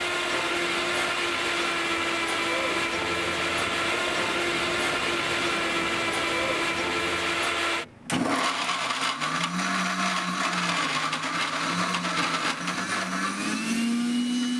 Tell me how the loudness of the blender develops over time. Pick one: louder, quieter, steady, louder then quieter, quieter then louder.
steady.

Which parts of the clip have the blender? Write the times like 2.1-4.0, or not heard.
0.0-14.5.